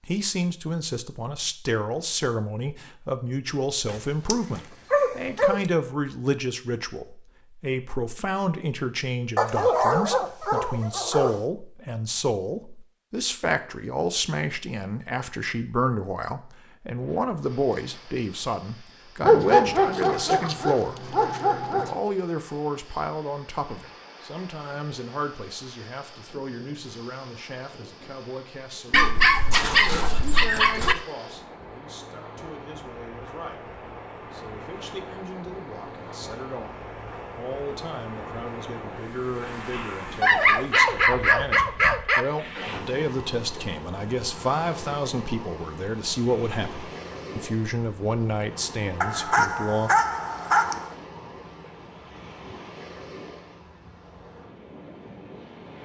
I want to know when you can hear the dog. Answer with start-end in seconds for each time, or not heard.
3.9-5.6, 9.3-11.4, 19.2-21.9, 28.9-30.9, 40.2-42.2, 49.0-50.9.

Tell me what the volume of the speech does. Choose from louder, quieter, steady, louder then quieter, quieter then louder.
quieter then louder.